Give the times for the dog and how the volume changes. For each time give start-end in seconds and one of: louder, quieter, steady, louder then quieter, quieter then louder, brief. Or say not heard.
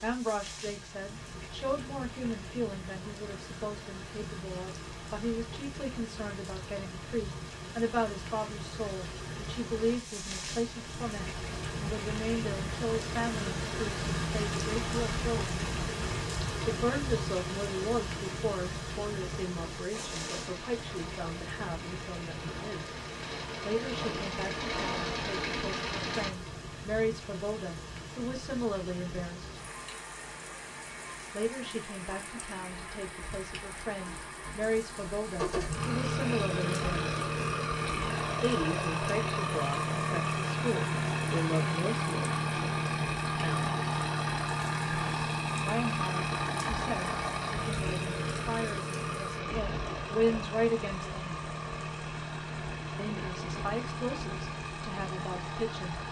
not heard.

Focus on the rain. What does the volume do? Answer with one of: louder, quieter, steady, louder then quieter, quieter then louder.
louder then quieter.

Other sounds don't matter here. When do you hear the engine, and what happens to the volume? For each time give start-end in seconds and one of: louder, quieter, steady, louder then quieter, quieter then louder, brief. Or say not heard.
19.9-26.3 louder
35.4-56.0 quieter.